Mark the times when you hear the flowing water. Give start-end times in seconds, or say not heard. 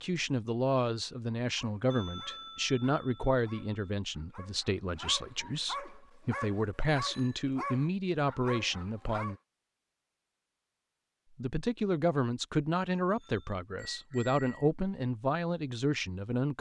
not heard.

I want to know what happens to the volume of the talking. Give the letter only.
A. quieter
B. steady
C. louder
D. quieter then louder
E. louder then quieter
B.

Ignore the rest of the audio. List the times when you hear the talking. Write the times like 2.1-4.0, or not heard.
0.0-9.3, 11.3-16.5.